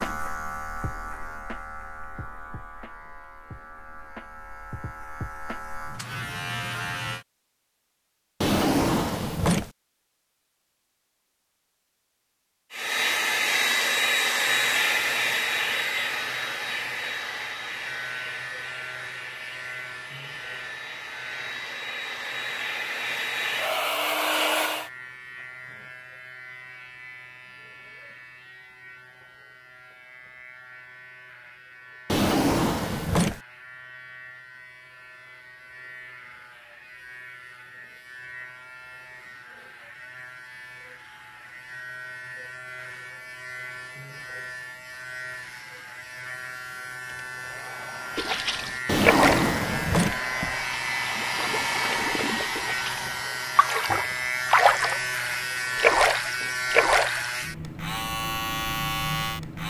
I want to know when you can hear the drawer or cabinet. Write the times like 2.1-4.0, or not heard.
8.4-9.7, 32.0-33.4, 48.9-50.2.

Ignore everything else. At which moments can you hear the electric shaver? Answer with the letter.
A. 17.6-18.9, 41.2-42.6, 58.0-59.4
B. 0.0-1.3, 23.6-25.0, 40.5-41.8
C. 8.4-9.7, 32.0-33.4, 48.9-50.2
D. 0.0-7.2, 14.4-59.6
D.